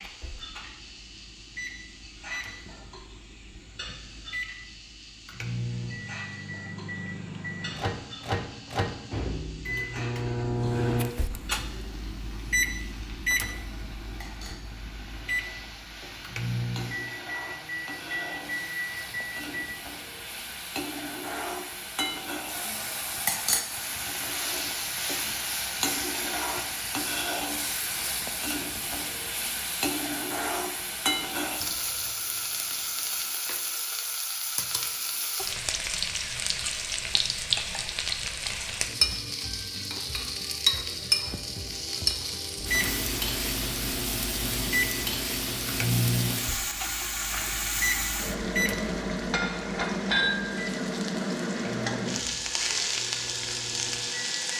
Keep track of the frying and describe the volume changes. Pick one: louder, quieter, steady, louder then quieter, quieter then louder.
louder.